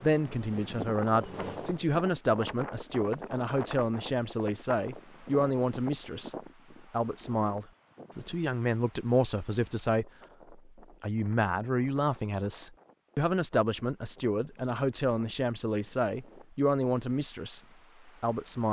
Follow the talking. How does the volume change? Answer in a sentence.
The volume of the talking stays about the same.